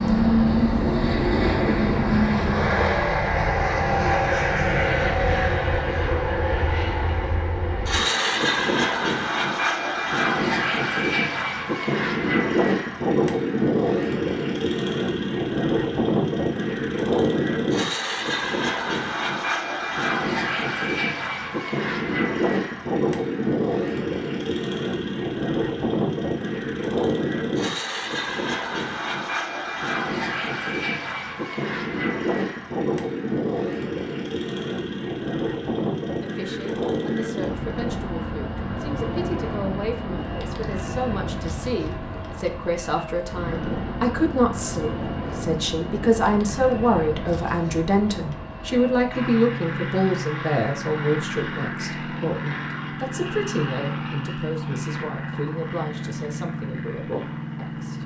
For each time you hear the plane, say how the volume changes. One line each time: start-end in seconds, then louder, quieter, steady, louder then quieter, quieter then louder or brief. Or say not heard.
0.0-58.0 quieter.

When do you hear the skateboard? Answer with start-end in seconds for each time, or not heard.
not heard.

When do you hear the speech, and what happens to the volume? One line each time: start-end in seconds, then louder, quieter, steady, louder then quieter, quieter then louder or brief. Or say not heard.
36.2-58.0 louder then quieter.